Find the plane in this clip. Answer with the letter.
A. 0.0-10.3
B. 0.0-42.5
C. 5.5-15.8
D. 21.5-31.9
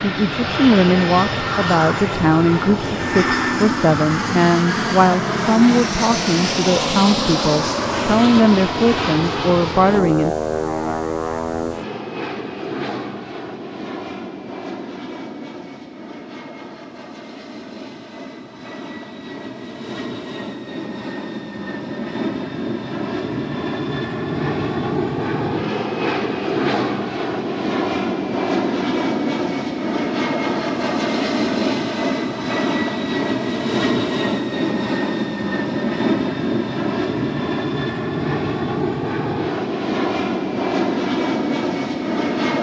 B.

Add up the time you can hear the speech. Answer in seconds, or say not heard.
10 s.